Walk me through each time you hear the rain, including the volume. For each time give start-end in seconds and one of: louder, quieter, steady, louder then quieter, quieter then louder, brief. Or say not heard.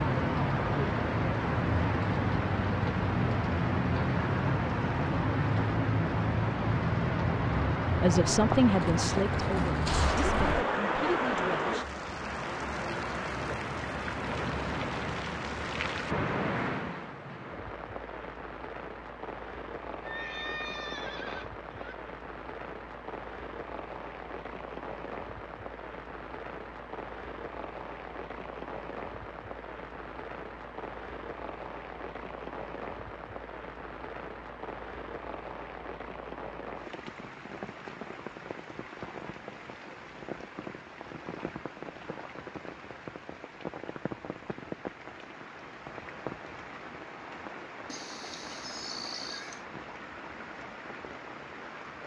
0.0-52.0 quieter.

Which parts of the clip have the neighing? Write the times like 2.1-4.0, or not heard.
8.8-10.7, 20.0-21.9, 47.9-49.6.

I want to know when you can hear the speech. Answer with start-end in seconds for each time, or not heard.
8.0-11.8.